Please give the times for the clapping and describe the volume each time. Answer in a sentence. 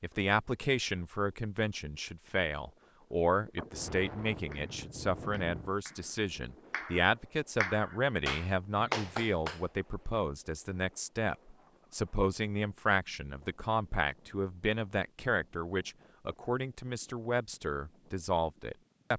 The clapping can be heard from 4.5 to 9.6 s, getting louder.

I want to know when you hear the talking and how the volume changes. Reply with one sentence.
The talking can be heard from 0.0 to 19.1 s, at a steady volume.